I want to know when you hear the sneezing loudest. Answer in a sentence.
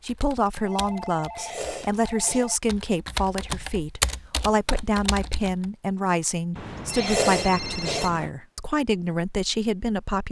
The volume of the sneezing peaks at 7 seconds.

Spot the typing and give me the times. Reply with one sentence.
You can hear the typing from 0.1 to 5.7 s.